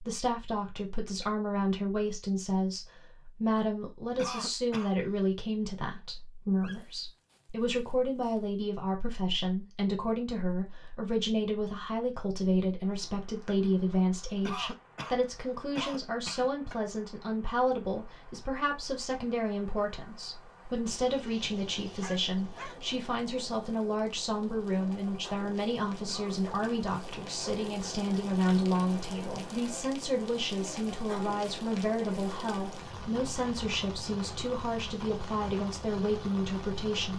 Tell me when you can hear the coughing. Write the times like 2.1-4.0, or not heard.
4.2-4.9, 14.4-16.8, 26.1-27.6.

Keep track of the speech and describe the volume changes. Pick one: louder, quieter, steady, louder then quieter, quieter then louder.
steady.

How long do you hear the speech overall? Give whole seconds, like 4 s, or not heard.
37 s.